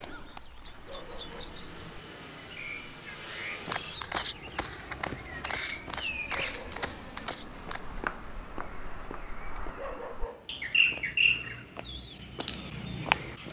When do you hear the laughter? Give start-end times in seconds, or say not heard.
not heard.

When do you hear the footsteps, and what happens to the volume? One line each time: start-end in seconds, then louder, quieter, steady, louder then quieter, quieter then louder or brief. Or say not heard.
3.5-9.8 quieter.